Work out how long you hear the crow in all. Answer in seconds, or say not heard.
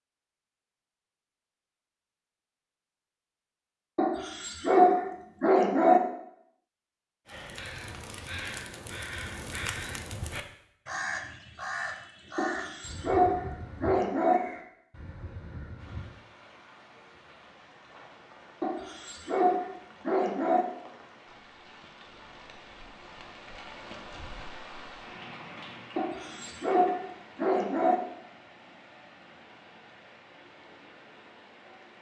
9 s.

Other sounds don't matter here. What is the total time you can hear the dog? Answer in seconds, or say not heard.
8 s.